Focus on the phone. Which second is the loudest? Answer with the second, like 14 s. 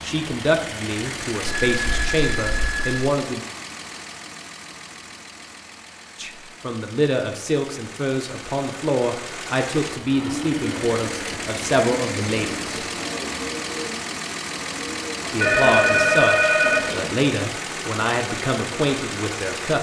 16 s.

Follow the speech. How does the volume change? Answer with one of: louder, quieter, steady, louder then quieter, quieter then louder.
steady.